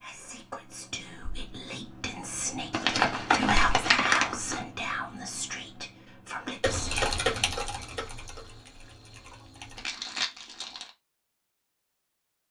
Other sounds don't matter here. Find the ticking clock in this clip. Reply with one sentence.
You can't hear the ticking clock here.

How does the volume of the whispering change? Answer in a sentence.
The loudness of the whispering goes up, then down.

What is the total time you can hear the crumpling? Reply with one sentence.
The crumpling can be heard for 3 seconds in total.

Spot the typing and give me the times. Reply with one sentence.
The typing can be heard from 6.6 to 9.8 s.